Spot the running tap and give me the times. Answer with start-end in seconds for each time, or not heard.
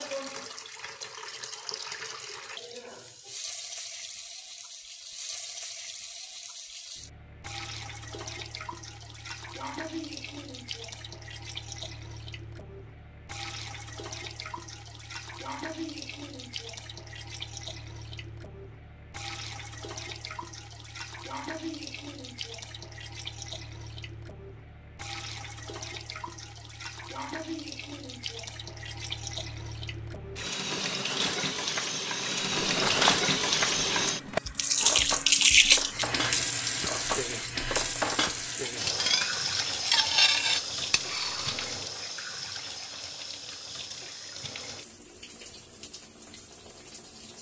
0.0-47.3.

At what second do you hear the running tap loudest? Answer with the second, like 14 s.
35 s.